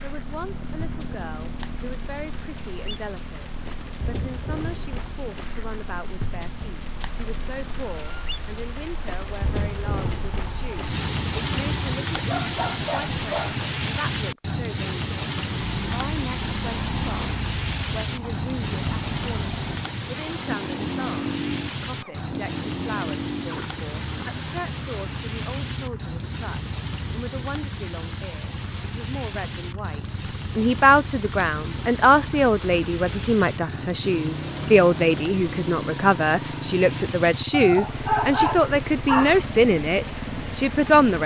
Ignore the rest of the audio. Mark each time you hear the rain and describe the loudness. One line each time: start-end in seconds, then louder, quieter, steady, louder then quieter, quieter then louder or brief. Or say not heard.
0.0-41.2 louder then quieter.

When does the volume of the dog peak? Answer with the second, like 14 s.
38 s.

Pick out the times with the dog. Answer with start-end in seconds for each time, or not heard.
12.2-13.7, 37.5-39.5.